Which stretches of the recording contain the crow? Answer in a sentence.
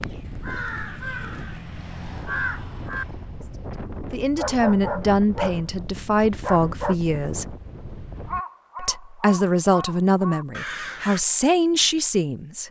You can hear the crow from 0.0 to 3.0 s and from 8.2 to 11.2 s.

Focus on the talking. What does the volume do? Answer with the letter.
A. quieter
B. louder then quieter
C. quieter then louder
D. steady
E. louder
D.